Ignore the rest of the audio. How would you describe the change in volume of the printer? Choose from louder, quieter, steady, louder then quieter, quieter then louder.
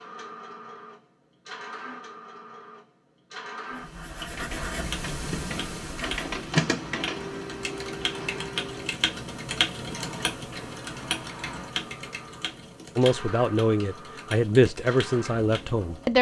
louder then quieter.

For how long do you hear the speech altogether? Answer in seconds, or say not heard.
3 s.